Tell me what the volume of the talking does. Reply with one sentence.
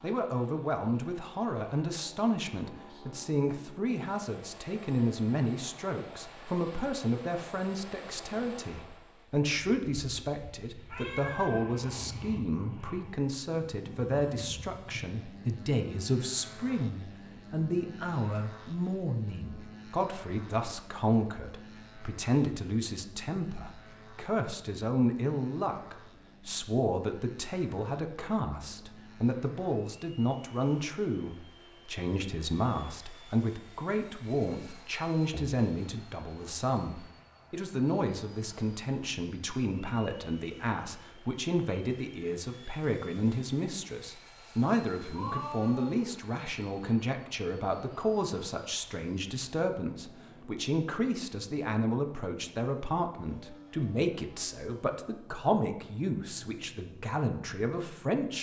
The loudness of the talking stays about the same.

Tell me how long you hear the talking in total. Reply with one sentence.
The talking can be heard for 58 seconds in total.